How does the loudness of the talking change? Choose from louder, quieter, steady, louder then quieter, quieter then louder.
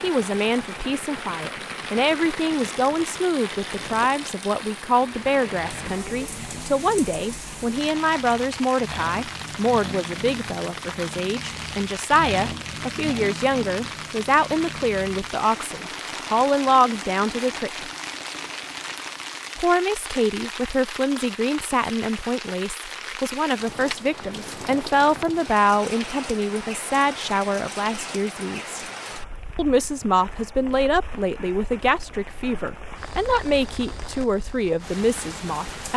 steady.